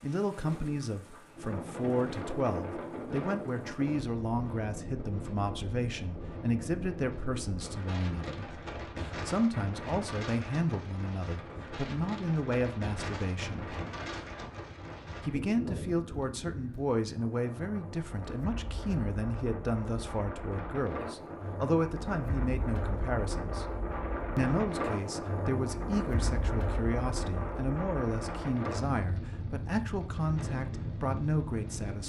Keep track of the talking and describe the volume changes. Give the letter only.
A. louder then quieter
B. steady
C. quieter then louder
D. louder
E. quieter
B.